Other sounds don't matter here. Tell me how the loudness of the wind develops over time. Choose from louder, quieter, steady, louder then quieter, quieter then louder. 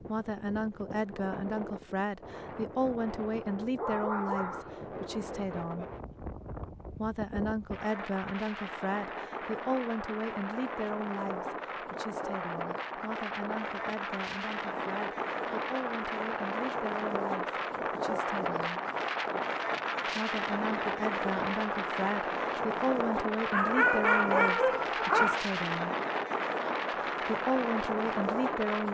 louder.